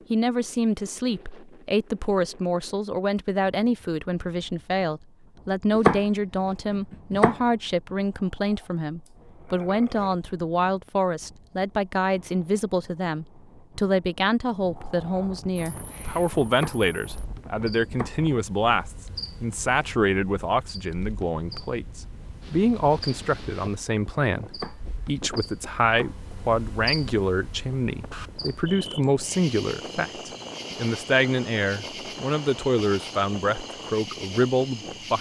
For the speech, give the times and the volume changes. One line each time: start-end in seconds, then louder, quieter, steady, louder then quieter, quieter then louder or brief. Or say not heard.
0.1-35.1 steady.